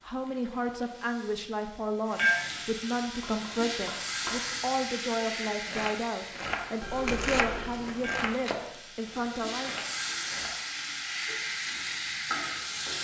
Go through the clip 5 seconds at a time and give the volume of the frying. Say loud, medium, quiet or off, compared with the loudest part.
loud, medium, loud.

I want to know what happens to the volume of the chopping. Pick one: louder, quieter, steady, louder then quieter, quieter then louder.
louder then quieter.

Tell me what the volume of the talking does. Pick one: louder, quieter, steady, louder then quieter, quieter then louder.
steady.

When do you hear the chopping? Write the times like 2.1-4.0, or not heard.
3.1-10.5.